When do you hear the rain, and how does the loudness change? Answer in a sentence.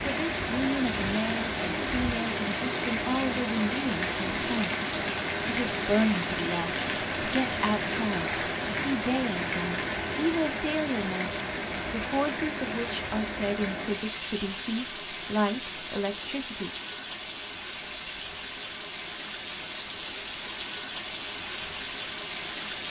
The rain can be heard from 0.0 to 22.8 s, getting quieter.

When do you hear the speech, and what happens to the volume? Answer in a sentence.
You can hear the speech from 0.1 to 16.7 s, at a steady volume.